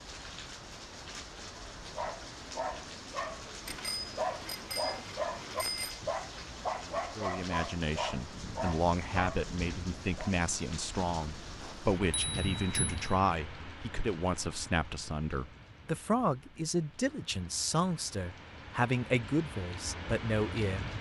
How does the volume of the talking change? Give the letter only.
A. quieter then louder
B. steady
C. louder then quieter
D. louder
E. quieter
B.